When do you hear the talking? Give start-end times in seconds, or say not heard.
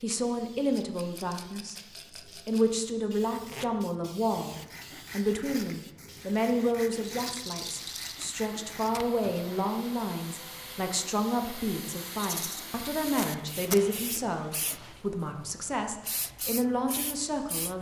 0.0-17.7.